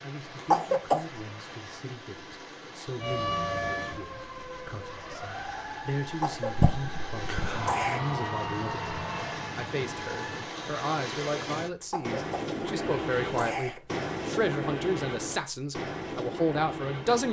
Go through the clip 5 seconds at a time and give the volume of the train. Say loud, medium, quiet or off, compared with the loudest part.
medium, medium, loud, loud.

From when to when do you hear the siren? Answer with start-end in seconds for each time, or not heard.
3.0-10.5.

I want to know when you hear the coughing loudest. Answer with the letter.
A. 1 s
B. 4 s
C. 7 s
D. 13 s
A.